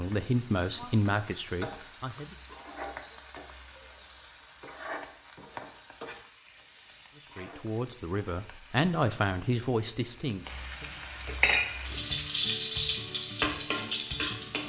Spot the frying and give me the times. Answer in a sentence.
The frying can be heard from 0.0 to 14.6 s.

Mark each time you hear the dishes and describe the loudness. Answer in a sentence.
The dishes can't be heard in this clip.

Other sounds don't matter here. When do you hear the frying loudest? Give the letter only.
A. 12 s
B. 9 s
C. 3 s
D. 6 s
A.